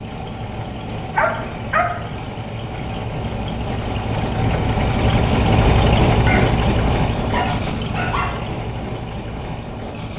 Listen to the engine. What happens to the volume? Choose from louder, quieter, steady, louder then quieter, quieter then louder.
louder then quieter.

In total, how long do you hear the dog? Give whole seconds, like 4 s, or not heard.
3 s.